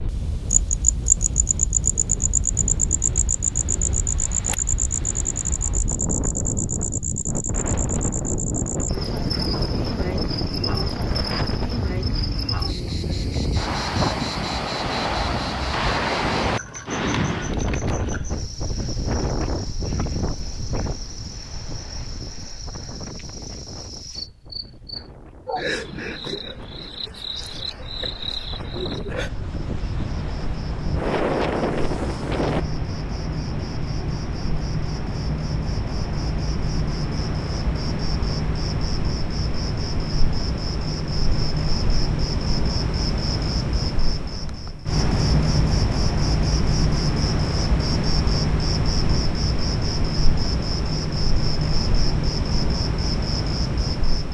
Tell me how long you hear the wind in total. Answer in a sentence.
The wind can be heard for 33 seconds in total.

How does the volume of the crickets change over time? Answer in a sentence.
The loudness of the crickets goes down, then up.